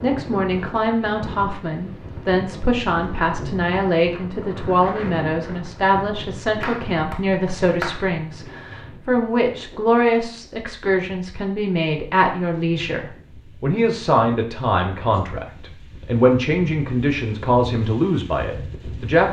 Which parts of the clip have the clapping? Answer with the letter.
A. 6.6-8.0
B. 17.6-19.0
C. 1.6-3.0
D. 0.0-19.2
A.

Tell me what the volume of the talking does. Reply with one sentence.
The loudness of the talking stays about the same.